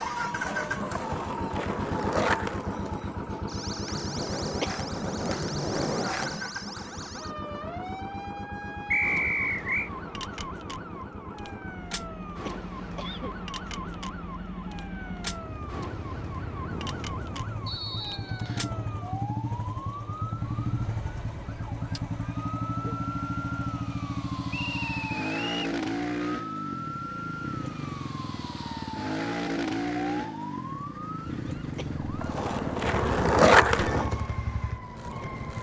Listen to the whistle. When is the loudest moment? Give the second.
9 s.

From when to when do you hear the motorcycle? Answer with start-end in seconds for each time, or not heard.
0.0-35.5.